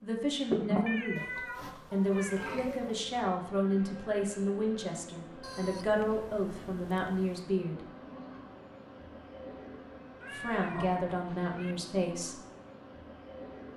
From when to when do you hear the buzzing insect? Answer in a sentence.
You can hear the buzzing insect from 0.0 to 13.7 s.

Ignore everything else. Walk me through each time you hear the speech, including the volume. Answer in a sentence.
The speech can be heard from 0.0 to 7.8 s, at a steady volume; and briefly from 10.3 to 12.4 s.